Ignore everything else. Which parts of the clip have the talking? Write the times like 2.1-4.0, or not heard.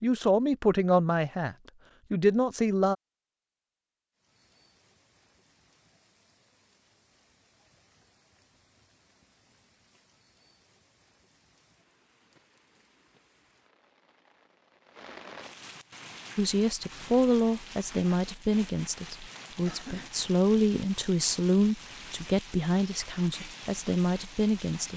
0.0-3.0, 16.4-24.9.